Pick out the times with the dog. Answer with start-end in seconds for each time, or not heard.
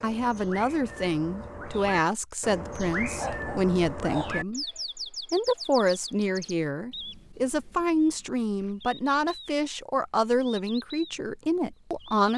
3.1-4.5.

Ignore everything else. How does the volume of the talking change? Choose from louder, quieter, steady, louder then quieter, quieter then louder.
steady.